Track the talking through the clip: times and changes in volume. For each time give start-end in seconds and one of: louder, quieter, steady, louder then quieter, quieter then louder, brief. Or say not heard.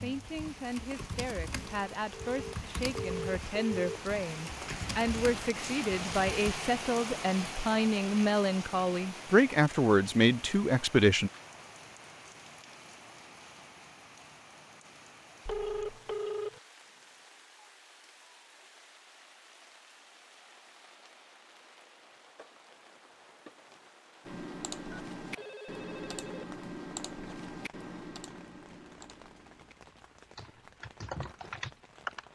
0.0-11.3 louder.